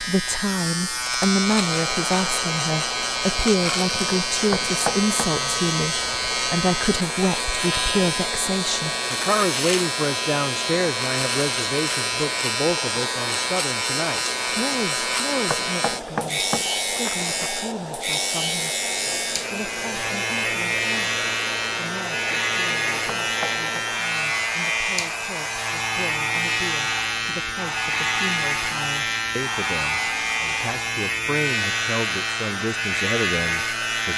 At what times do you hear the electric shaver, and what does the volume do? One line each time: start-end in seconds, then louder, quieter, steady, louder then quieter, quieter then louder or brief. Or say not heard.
0.0-34.1 steady.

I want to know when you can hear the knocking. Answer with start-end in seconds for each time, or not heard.
4.5-5.3, 15.5-17.5, 23.2-23.6.